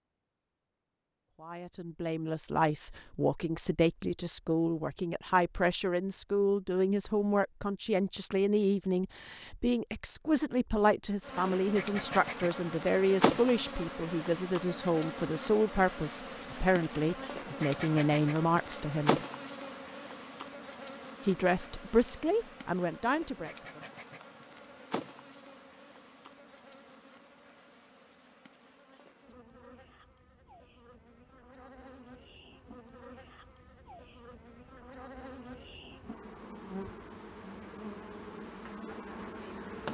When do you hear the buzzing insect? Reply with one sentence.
You can hear the buzzing insect from 11.2 to 39.8 s.